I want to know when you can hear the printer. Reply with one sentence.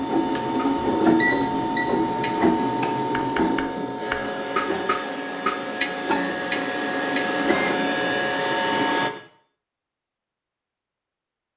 The printer can be heard from 0.0 to 9.1 s.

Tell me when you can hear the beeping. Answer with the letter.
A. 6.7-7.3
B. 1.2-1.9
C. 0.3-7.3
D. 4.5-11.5
B.